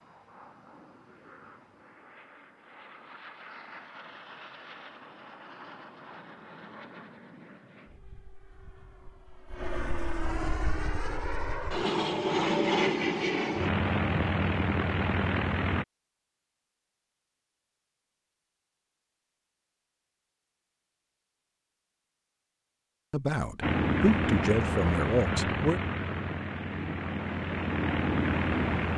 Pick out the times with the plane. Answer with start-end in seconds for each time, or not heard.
0.0-15.8, 23.6-28.9.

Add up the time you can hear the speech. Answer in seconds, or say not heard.
3 s.